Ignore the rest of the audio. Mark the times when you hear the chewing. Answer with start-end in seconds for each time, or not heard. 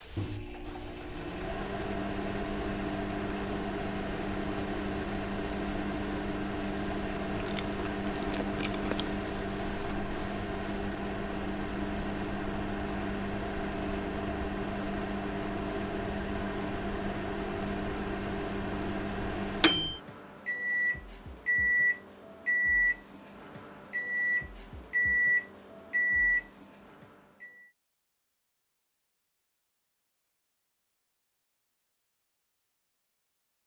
7.3-9.1.